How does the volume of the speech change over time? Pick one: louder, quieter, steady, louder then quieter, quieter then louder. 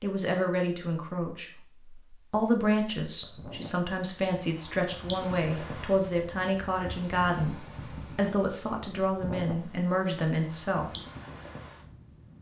steady.